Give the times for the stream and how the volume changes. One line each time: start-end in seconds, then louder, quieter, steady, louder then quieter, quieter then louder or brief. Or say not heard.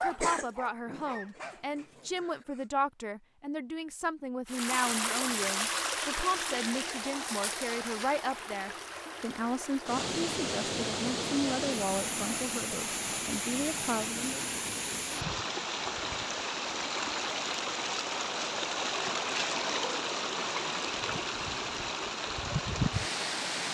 4.5-23.6 steady.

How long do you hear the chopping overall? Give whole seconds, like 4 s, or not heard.
not heard.